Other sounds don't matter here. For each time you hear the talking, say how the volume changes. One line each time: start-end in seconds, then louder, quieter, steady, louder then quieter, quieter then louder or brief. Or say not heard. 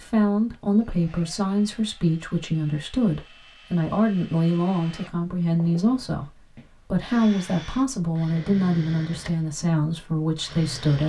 0.0-11.0 steady.